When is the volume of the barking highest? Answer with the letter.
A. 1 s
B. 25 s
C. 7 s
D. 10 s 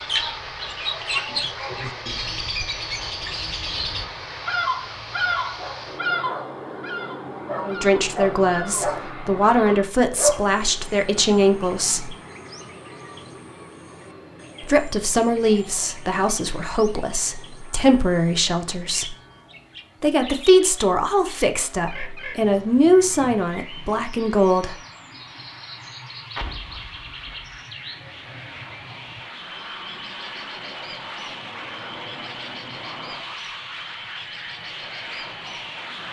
D.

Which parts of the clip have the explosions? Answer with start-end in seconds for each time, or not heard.
26.4-27.6.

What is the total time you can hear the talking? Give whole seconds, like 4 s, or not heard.
14 s.